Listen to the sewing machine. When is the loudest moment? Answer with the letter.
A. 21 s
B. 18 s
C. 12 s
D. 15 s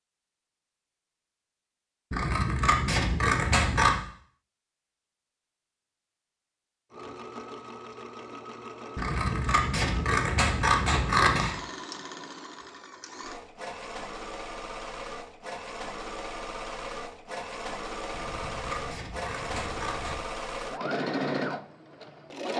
A.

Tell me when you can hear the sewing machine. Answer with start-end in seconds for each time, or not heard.
6.9-22.5.